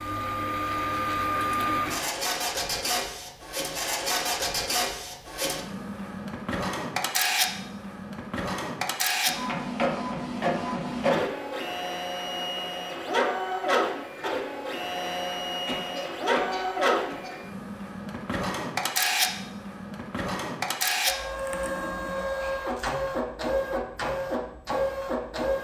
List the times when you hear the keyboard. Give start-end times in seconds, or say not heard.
not heard.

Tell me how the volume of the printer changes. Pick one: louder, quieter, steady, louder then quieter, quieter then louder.
steady.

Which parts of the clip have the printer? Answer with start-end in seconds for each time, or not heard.
0.0-25.6.